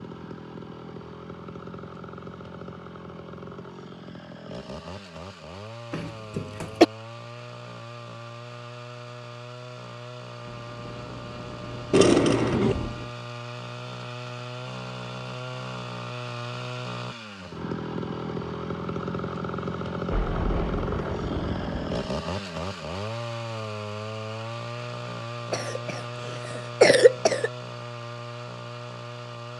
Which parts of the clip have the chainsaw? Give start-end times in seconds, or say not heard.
0.0-29.5.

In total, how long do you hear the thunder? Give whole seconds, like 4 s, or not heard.
5 s.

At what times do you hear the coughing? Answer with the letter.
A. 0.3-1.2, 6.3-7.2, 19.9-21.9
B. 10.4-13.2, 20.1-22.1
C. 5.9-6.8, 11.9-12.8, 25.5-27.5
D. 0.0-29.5
C.